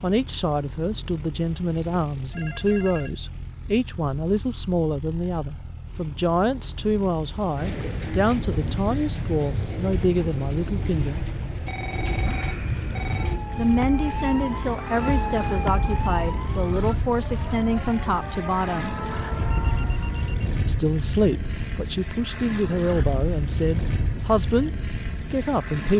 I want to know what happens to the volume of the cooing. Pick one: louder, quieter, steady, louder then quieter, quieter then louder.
steady.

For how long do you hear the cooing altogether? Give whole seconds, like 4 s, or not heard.
6 s.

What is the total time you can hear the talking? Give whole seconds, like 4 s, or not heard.
21 s.